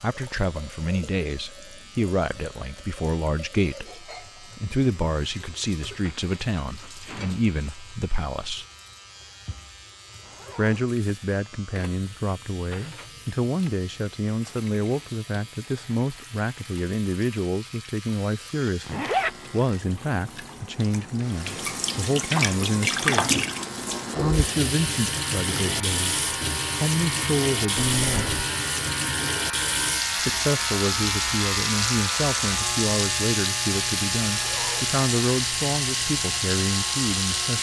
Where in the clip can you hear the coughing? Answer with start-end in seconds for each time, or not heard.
not heard.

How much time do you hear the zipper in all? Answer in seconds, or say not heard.
2 s.